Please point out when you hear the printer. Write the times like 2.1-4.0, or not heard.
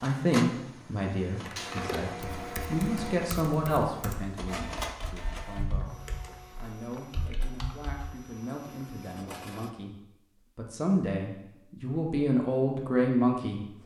0.0-9.7.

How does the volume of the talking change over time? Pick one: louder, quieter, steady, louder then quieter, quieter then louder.
quieter then louder.